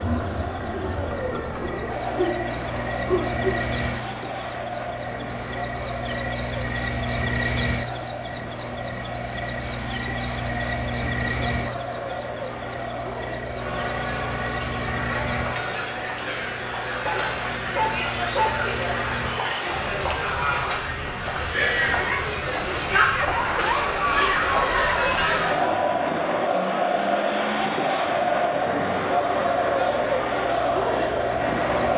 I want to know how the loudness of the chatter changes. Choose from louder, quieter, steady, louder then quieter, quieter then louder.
louder.